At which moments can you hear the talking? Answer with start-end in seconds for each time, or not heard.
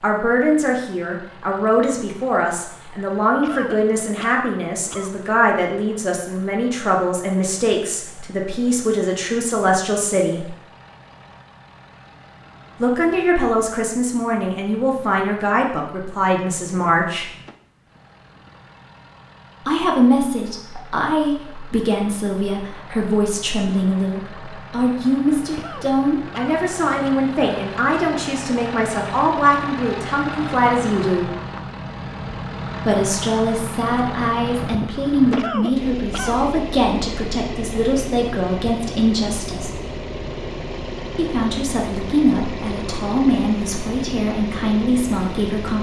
0.0-10.6, 12.8-17.2, 19.6-31.2, 32.9-39.7, 41.1-45.7.